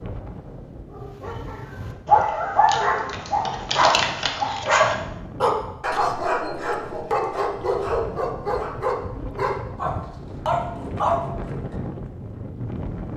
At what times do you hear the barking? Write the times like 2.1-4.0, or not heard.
0.9-11.8.